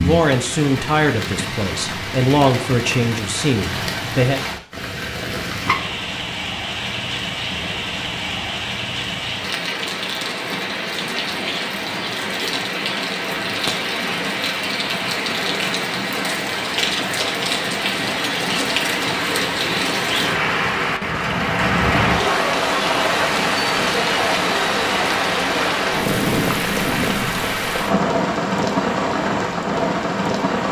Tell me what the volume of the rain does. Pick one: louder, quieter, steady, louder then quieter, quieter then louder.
louder.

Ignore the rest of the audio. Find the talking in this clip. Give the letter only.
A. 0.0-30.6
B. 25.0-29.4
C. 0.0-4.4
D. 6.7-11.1
C.